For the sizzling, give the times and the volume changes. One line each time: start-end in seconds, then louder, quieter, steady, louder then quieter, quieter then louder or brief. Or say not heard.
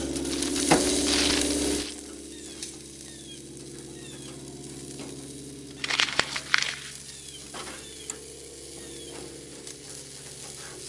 0.0-10.8 quieter.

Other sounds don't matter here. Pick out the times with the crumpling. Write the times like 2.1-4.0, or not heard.
0.2-1.9, 5.8-6.9.